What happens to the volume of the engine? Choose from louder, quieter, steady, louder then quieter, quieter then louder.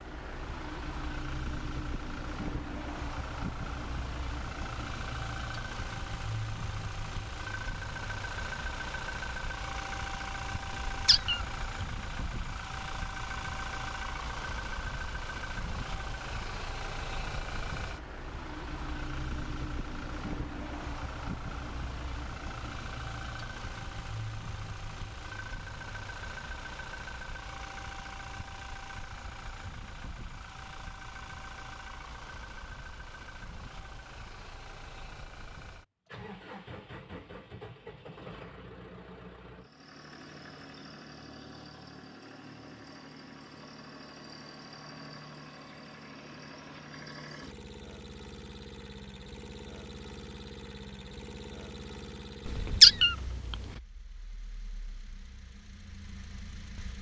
quieter.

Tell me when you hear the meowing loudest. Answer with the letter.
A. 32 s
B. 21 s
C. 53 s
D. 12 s
C.